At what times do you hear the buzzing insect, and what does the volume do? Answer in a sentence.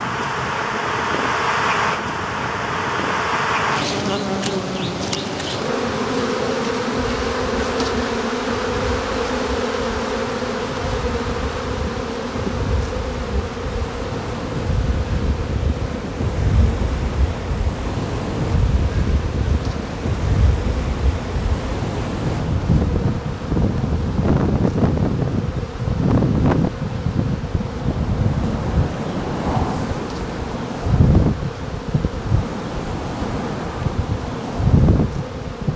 The buzzing insect can be heard from 0.0 to 35.7 s, getting quieter.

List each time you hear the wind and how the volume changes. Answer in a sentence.
The wind can be heard from 0.0 to 35.7 s, getting louder.